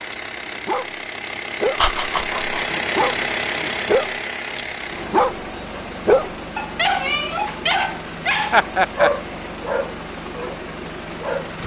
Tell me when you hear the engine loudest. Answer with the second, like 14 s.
3 s.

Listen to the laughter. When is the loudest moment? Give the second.
9 s.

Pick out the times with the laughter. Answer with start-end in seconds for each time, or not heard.
1.8-2.6, 8.5-9.1.